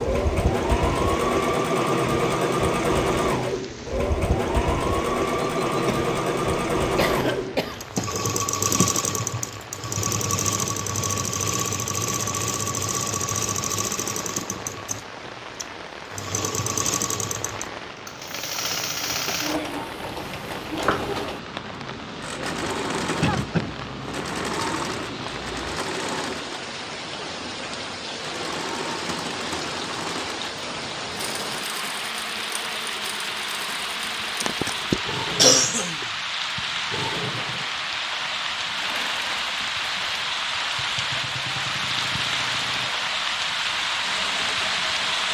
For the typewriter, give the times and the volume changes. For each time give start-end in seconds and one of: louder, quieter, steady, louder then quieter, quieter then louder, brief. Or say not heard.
not heard.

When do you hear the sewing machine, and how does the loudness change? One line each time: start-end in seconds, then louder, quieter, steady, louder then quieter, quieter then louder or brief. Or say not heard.
0.0-45.3 quieter.